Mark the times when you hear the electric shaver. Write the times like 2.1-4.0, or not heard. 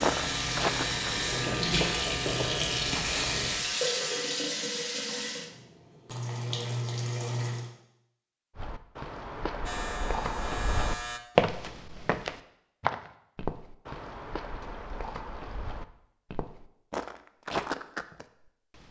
0.2-4.3, 9.7-11.2.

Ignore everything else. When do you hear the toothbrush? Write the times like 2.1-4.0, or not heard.
not heard.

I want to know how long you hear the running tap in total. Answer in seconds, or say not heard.
8 s.